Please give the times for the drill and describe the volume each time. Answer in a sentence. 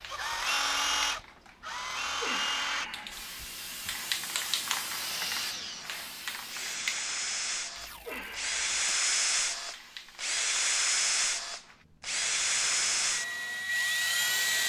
The drill can be heard from 0.1 to 14.6 s, getting quieter then louder.